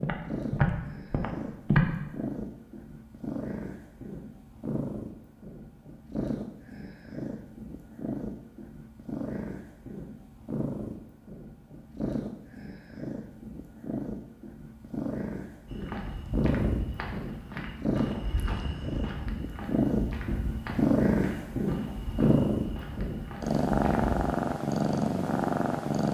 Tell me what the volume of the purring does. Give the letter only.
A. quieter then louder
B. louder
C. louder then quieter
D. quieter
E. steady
B.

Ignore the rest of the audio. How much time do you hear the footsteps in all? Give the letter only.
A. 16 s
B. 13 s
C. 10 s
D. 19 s
C.